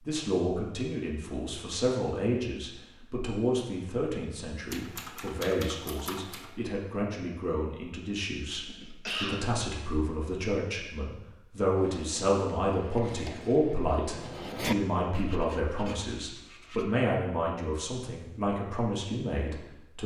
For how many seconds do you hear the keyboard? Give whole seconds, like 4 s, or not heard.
2 s.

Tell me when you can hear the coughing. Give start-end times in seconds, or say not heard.
8.7-9.4.